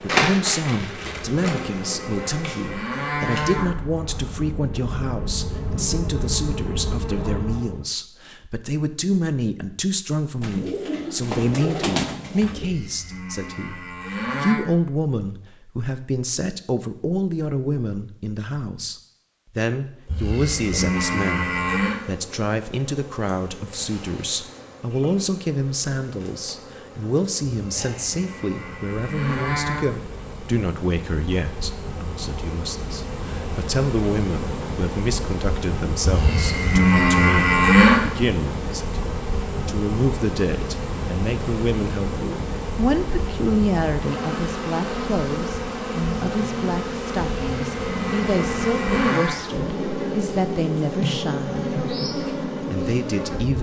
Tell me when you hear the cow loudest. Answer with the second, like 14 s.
38 s.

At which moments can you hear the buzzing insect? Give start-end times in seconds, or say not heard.
0.0-7.8, 20.0-53.5.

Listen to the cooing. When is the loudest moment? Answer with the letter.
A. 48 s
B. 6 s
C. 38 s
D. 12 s
D.